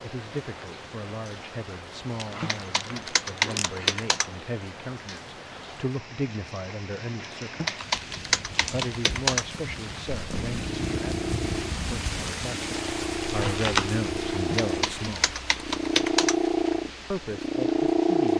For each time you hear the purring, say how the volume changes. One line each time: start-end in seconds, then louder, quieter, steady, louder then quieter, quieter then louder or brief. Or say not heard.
10.2-18.3 louder.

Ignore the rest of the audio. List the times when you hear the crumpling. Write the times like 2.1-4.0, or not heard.
2.1-4.0, 7.8-8.9, 13.3-13.9.